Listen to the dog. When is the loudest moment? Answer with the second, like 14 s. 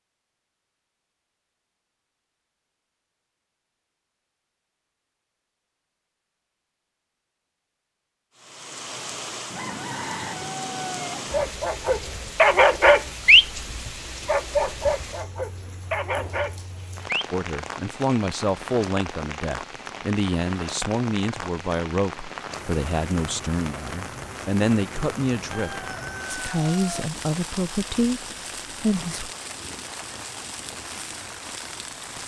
13 s.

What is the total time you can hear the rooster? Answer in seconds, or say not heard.
4 s.